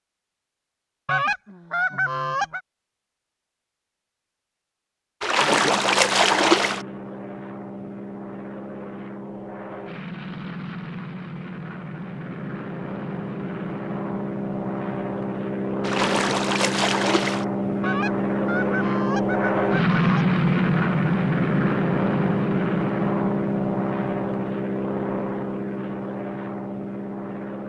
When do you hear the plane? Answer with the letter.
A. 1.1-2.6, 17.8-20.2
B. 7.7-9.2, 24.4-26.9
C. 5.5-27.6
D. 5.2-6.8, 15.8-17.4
C.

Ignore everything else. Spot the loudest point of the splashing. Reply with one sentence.
The volume of the splashing peaks at 6 seconds.